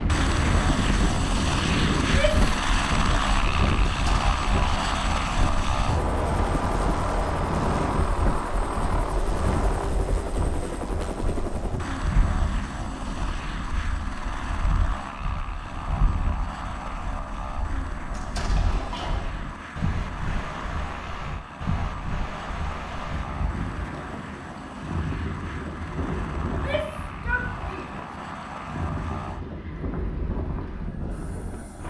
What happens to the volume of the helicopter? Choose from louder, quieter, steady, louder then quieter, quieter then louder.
quieter.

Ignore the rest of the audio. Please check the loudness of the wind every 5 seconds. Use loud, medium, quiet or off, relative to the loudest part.
loud, loud, medium, medium, medium, medium, medium.